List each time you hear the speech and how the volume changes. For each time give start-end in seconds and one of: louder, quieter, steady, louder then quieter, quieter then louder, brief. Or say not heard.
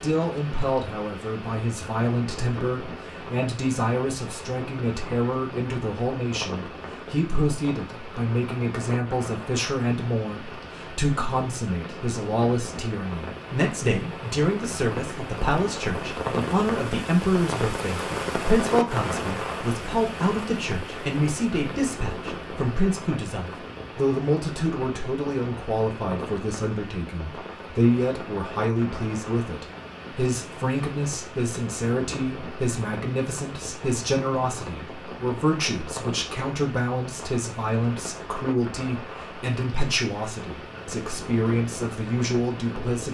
0.0-43.1 steady.